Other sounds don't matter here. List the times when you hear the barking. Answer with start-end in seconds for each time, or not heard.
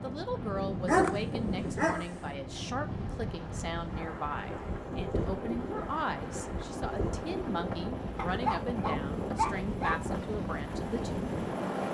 0.8-2.1, 8.2-10.0.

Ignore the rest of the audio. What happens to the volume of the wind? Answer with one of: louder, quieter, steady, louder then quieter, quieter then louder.
steady.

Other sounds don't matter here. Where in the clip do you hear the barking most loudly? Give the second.
1 s.